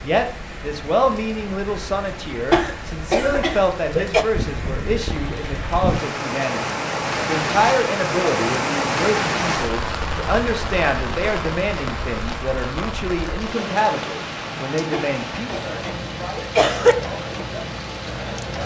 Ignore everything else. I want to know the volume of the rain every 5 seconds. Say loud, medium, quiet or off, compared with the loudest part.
medium, loud, medium, medium.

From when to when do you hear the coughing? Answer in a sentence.
The coughing can be heard from 2.5 to 4.2 s and from 14.9 to 16.9 s.